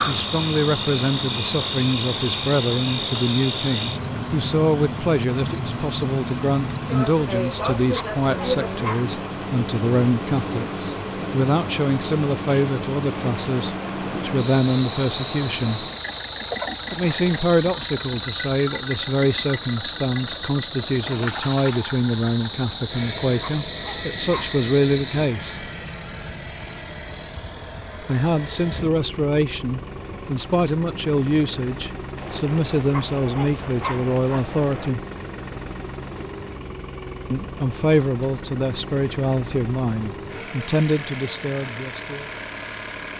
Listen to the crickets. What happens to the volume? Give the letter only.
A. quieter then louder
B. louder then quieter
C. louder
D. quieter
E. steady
E.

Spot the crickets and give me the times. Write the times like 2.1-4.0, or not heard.
0.0-25.3.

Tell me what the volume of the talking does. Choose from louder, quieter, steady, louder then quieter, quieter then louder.
steady.